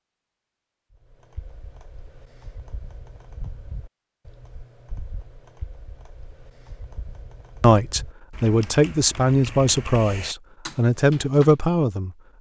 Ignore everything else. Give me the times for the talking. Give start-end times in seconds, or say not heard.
7.6-12.2.